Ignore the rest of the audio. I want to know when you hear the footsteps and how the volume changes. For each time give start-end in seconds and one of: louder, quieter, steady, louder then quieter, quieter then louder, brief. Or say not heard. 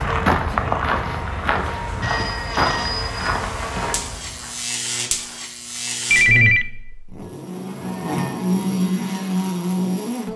0.0-4.5 quieter.